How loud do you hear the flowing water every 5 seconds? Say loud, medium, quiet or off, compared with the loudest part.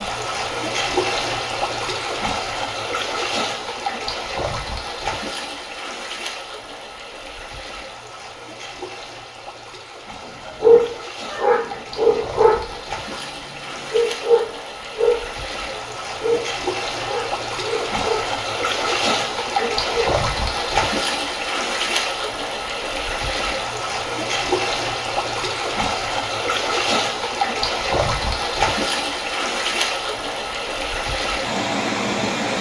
loud, medium, medium, loud, loud, loud, loud.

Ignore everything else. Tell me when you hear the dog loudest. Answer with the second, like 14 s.
11 s.